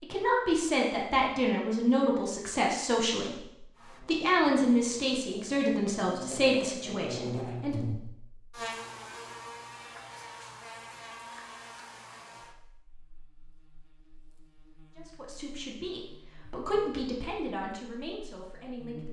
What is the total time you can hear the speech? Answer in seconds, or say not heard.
12 s.